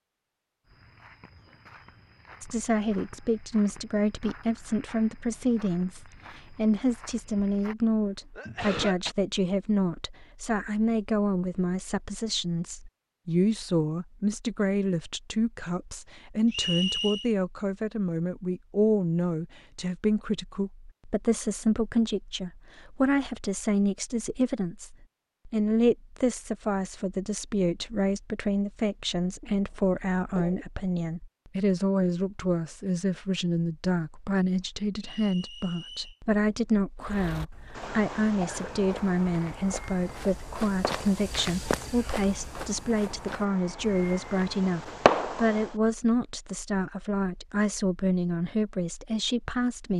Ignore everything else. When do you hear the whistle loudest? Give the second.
17 s.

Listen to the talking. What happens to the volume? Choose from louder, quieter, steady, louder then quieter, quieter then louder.
steady.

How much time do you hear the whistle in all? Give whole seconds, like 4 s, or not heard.
2 s.